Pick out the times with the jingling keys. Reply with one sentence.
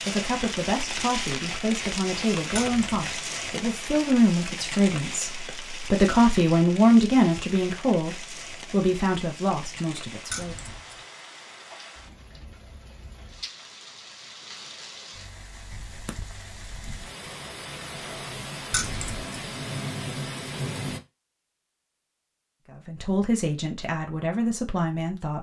The jingling keys can be heard from 2.5 to 3.0 s, from 10.3 to 10.9 s and from 18.7 to 19.4 s.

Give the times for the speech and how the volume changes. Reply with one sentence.
You can hear the speech from 0.1 to 10.6 s, getting louder then quieter; and briefly from 22.7 to 25.3 s.